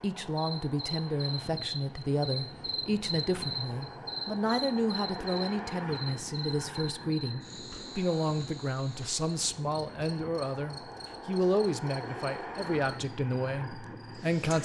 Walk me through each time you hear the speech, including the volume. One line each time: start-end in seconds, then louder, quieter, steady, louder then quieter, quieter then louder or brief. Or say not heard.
0.0-14.6 steady.